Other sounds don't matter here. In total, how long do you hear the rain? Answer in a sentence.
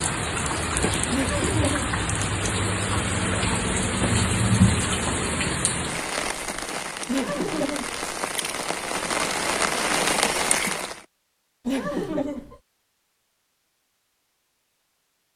You can hear the rain for 11 seconds altogether.